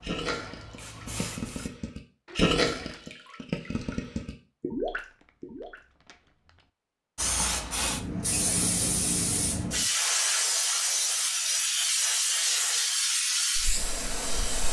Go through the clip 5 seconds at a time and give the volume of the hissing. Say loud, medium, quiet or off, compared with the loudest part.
quiet, loud, loud.